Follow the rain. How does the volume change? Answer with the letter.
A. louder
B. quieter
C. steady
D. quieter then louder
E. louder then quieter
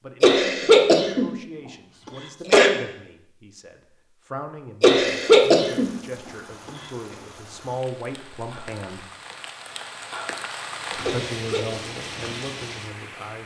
A.